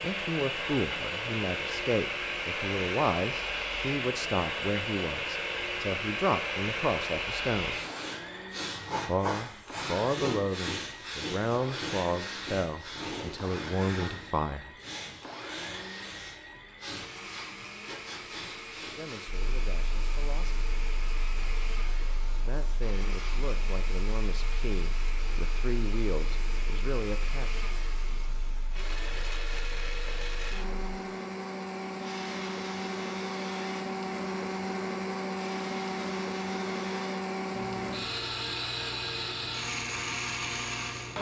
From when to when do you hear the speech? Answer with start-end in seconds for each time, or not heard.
0.0-7.8, 9.1-14.7, 18.9-20.6, 22.4-27.6.